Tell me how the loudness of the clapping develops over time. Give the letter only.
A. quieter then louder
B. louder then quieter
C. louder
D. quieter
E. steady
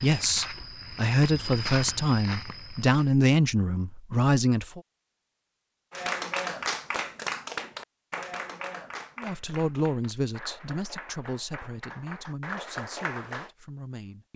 A.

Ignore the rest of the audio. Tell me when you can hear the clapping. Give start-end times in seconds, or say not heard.
5.9-13.5.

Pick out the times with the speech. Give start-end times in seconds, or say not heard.
0.0-4.8, 9.2-14.3.